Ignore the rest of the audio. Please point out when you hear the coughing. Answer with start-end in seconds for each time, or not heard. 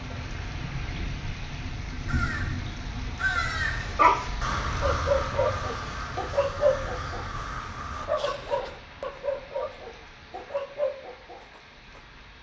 not heard.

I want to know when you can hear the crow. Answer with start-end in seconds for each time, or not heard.
1.9-8.1.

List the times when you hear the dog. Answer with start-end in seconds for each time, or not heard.
3.8-12.0.